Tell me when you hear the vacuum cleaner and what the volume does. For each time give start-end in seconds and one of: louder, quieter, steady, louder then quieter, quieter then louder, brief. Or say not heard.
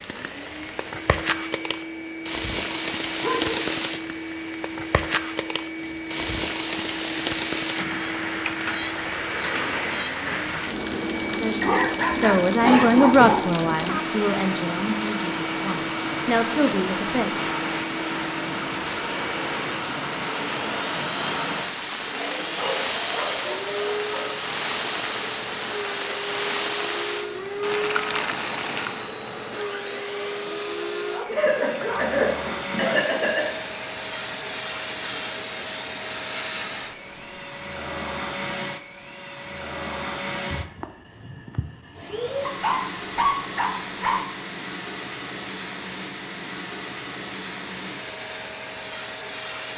0.0-49.7 steady.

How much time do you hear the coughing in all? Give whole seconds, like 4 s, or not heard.
3 s.